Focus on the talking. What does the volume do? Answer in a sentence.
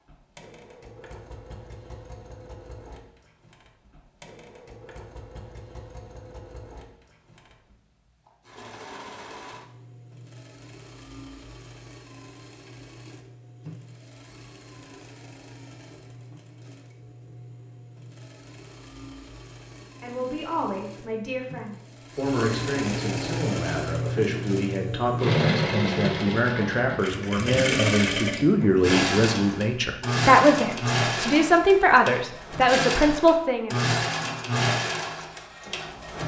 The volume of the talking goes up.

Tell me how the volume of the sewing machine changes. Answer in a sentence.
The loudness of the sewing machine goes up.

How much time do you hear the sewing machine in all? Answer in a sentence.
The sewing machine can be heard for 36 seconds in total.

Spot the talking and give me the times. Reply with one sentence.
The talking can be heard from 20.0 to 33.7 s.